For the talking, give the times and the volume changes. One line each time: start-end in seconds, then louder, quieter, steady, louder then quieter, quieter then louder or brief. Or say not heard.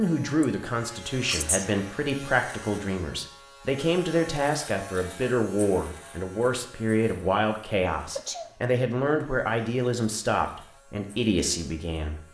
0.0-12.2 steady.